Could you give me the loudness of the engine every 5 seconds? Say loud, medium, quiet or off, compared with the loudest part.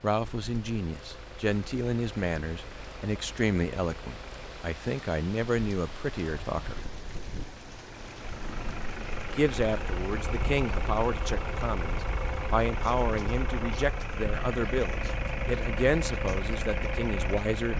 quiet, medium, loud, loud.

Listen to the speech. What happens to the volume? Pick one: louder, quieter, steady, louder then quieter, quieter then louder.
steady.